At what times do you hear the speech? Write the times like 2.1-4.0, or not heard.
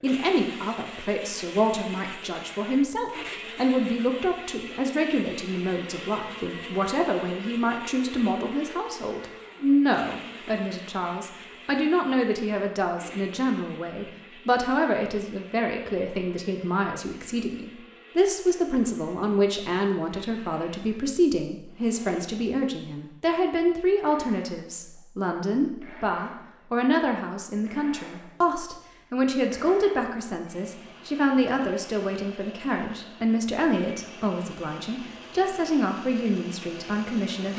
0.0-37.5.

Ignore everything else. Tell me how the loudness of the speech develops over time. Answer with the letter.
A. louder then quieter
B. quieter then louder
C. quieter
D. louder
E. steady
E.